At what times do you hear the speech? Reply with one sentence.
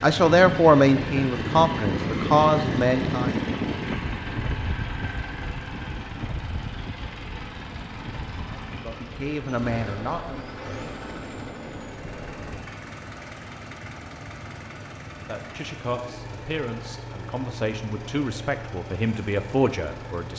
You can hear the speech from 0.0 to 3.4 s, from 8.4 to 10.6 s and from 15.2 to 20.3 s.